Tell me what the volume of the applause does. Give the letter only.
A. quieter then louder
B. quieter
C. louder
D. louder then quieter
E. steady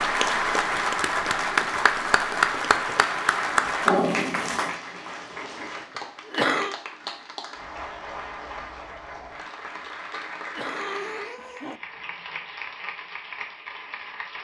B.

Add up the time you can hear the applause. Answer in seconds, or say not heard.
14 s.